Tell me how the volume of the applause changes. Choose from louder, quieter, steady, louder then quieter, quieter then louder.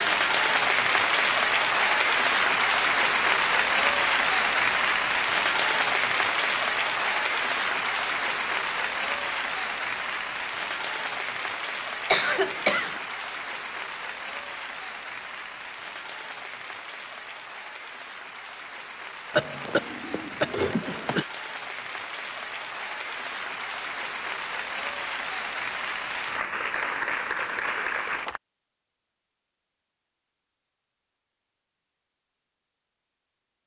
quieter then louder.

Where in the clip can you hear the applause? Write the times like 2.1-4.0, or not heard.
0.0-28.4.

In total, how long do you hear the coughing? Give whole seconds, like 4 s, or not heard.
3 s.